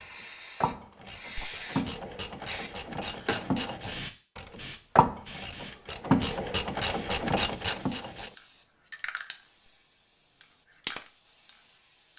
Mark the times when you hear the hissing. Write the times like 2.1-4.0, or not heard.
0.0-12.1.